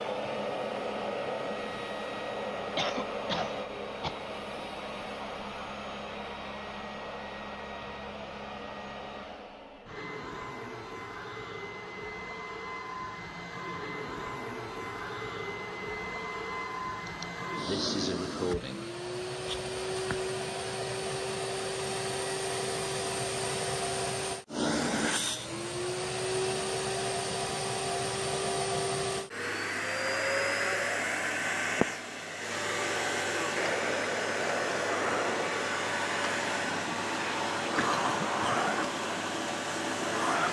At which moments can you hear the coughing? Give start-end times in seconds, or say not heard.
2.8-4.2, 17.1-18.9, 37.8-38.8.